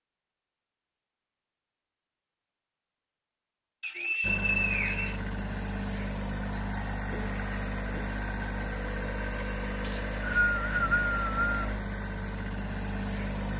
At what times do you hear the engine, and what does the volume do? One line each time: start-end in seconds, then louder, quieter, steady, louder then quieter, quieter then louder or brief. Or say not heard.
4.2-13.5 steady.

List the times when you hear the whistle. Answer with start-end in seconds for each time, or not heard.
3.8-5.2, 9.8-11.5.